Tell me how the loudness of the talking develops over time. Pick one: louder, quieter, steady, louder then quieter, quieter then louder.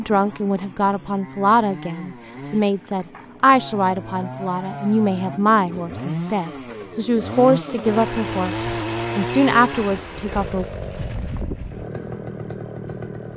steady.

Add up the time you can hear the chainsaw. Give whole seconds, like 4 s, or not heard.
13 s.